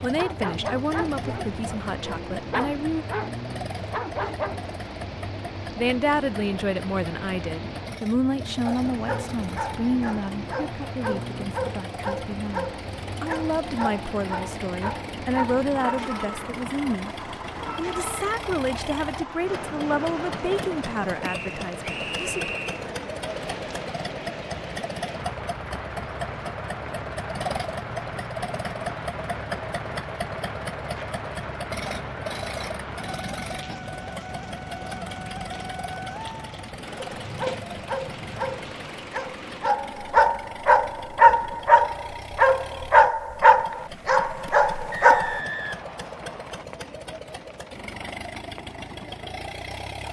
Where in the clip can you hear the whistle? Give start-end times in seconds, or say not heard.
21.2-22.8, 44.9-46.6.